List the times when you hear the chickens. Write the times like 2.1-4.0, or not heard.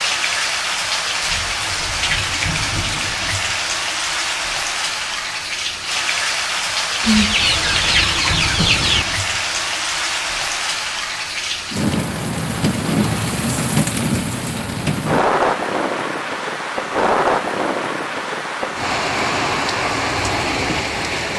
7.0-9.1.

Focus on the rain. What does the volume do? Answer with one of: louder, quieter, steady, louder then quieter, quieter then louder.
steady.